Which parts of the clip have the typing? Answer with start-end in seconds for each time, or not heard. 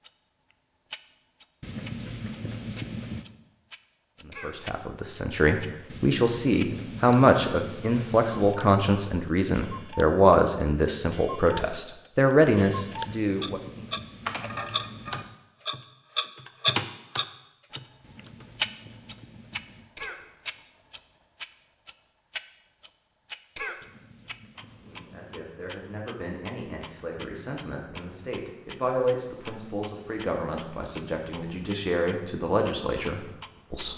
14.2-18.4.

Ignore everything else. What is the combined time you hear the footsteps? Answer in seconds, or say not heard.
not heard.